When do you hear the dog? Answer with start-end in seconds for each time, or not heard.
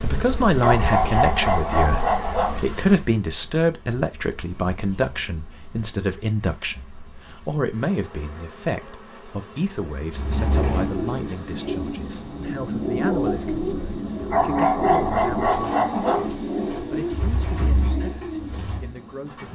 0.6-2.6, 14.3-16.2.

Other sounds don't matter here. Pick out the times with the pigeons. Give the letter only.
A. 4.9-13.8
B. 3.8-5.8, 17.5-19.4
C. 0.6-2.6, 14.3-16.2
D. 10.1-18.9
D.